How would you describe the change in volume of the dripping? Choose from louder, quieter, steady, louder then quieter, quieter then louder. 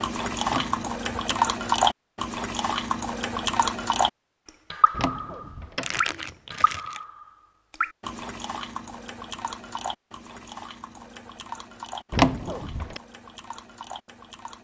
quieter.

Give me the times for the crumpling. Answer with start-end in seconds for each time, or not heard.
5.8-7.0.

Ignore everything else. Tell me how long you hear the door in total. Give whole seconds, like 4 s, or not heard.
3 s.